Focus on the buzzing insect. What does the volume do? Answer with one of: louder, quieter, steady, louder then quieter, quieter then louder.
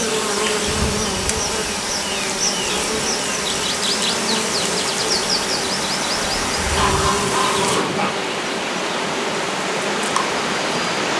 quieter.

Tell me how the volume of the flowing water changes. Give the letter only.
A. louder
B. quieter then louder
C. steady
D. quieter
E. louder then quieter
A.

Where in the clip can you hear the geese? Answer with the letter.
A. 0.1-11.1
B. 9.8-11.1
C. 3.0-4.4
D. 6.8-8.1
D.